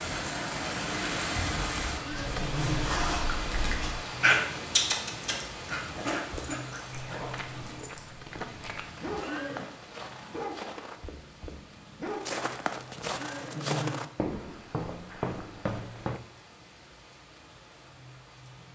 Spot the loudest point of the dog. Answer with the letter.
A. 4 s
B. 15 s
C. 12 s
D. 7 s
A.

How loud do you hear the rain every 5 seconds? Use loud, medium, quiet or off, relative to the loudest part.
loud, medium, quiet, quiet.